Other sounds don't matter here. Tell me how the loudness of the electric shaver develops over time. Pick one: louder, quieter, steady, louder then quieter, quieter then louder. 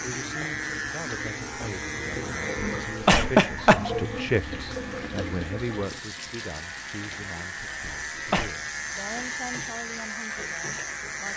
quieter then louder.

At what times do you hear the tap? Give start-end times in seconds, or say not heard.
0.0-11.1.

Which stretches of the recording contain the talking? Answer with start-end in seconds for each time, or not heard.
0.0-11.3.